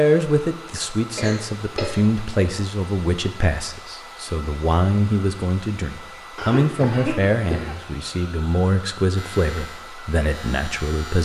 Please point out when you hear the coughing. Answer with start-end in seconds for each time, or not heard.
1.1-2.0, 6.3-7.8.